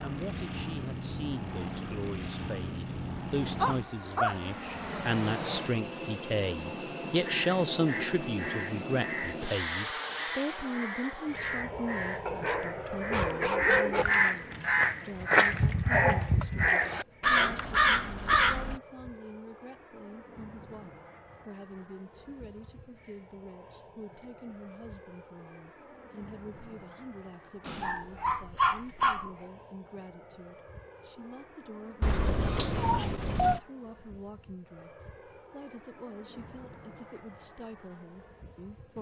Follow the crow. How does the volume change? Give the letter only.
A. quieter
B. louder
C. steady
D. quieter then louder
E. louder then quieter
B.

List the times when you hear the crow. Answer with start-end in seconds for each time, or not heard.
7.2-18.8.